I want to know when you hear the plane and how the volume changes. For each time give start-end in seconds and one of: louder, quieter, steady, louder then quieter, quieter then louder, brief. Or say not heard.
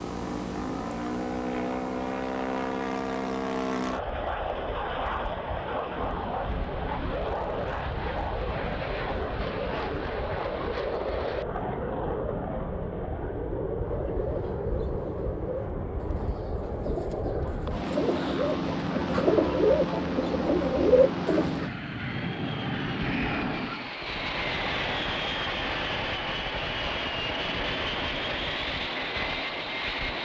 0.0-30.2 steady.